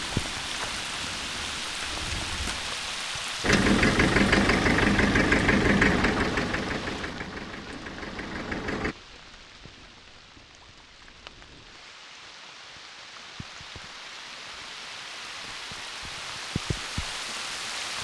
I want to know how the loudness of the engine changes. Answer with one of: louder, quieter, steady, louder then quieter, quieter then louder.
quieter.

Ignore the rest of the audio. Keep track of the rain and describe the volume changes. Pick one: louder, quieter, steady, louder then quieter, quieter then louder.
quieter then louder.